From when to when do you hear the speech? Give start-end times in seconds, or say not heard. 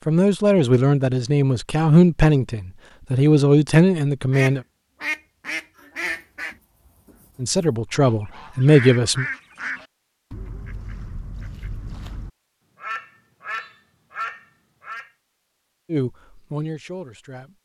0.1-4.6, 7.4-9.2, 15.9-17.5.